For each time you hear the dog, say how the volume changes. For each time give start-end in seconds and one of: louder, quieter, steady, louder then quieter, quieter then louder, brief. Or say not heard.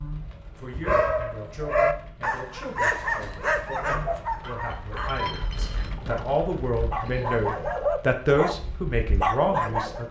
0.2-10.0 quieter then louder.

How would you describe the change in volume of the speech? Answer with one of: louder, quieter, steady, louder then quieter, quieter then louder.
louder.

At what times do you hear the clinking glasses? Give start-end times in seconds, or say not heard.
4.5-6.0.